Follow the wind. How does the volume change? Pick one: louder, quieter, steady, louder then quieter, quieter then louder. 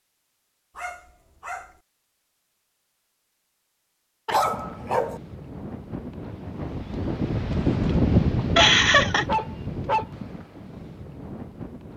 louder then quieter.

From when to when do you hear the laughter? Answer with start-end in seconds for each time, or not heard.
8.6-9.2.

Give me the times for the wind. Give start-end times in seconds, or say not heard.
4.3-11.9.